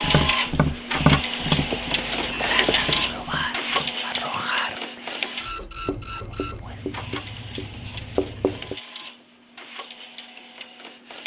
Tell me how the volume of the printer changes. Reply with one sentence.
The loudness of the printer goes down.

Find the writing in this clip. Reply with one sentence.
You can hear the writing from 1.4 to 3.2 s and from 5.8 to 8.8 s.